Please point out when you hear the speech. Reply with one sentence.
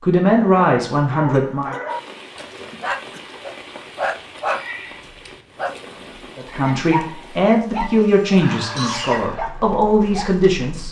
You can hear the speech from 0.0 to 1.8 s and from 6.3 to 10.8 s.